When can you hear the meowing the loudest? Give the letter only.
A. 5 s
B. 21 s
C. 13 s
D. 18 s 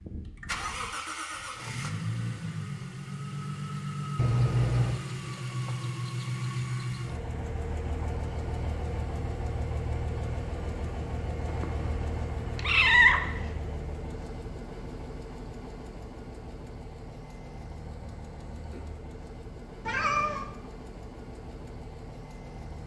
C.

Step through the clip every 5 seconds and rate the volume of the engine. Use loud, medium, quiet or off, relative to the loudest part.
loud, loud, loud, medium, medium.